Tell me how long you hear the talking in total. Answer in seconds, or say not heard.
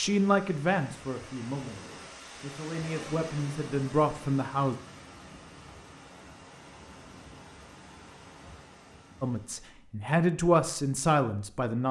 7 s.